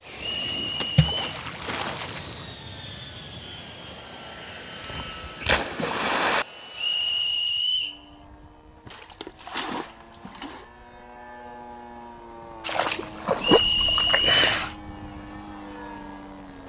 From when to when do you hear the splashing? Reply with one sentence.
You can hear the splashing from 0.8 to 2.5 s, from 4.8 to 6.5 s, from 8.8 to 10.7 s and from 12.7 to 14.8 s.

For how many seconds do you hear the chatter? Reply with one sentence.
The chatter can't be heard in this clip.